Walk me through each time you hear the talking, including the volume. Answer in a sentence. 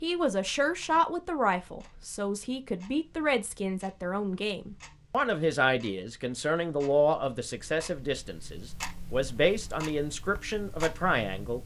You can hear the talking from 0.0 to 11.6 s, at a steady volume.